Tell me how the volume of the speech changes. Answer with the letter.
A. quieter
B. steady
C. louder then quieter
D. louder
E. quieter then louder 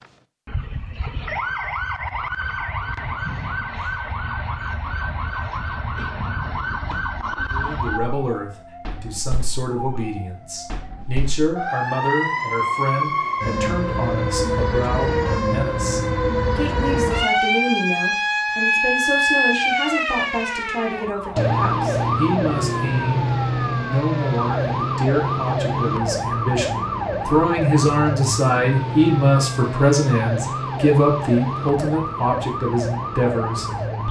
D.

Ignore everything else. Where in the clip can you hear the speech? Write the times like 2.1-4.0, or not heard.
7.5-33.7.